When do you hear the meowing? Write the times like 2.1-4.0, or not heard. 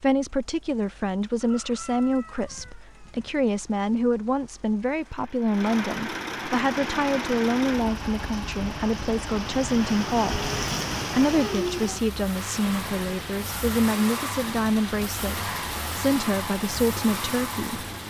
not heard.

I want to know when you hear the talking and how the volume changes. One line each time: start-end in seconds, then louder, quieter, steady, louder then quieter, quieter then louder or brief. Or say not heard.
0.0-10.4 steady
11.1-17.9 steady.